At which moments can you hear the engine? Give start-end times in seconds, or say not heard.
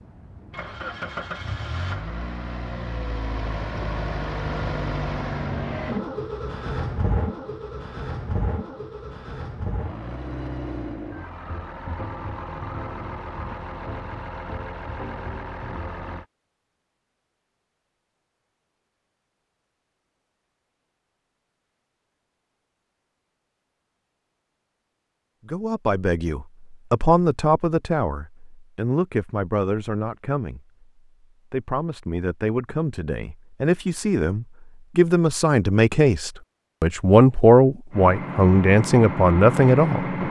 0.0-16.2, 37.9-40.2.